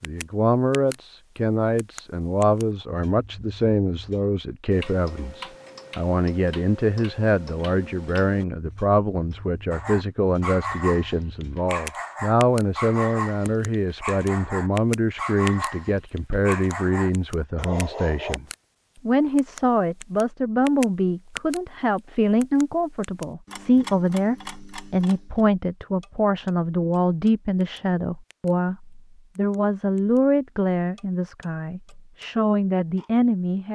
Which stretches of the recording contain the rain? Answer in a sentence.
The rain can't be heard in this clip.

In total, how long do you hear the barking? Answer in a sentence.
The barking can be heard for 9 seconds in total.